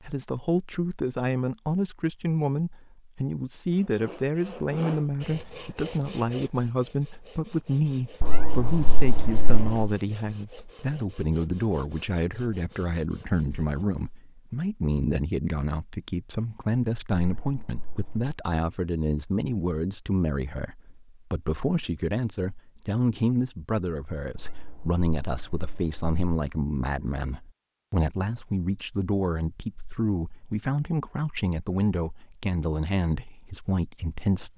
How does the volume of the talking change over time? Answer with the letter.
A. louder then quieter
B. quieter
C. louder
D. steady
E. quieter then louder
D.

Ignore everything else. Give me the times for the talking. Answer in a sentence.
You can hear the talking from 0.0 to 34.5 s.